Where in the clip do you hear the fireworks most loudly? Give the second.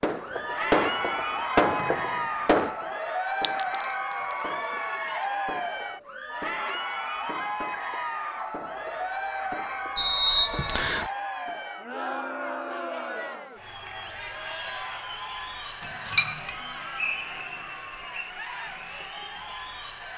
2 s.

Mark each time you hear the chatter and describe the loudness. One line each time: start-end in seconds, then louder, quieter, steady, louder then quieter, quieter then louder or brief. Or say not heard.
0.1-20.1 quieter.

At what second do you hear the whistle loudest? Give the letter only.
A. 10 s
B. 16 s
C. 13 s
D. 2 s
A.